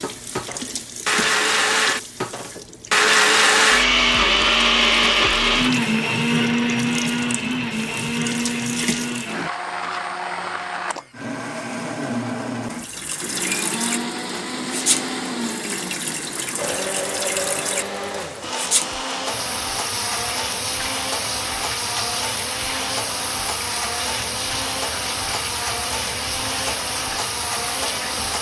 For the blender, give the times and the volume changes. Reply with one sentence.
The blender can be heard from 0.0 to 28.3 s, getting quieter.